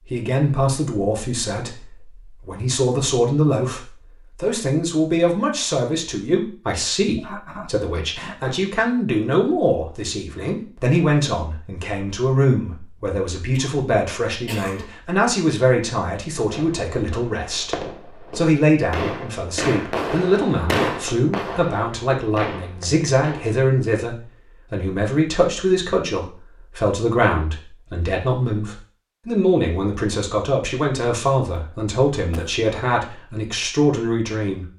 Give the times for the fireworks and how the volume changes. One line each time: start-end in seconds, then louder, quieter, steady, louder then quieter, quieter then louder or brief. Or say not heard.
16.4-23.5 louder then quieter.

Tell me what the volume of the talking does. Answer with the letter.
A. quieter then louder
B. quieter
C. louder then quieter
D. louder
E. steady
E.